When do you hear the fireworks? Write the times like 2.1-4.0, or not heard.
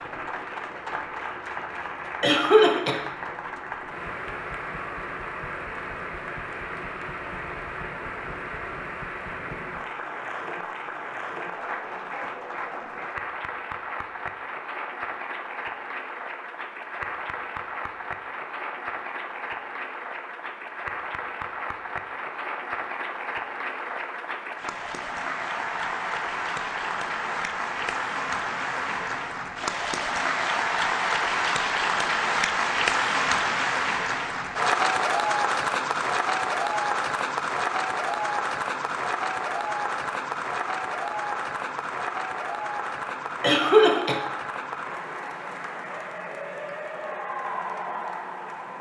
not heard.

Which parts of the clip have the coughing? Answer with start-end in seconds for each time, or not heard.
2.2-3.0, 43.4-44.2.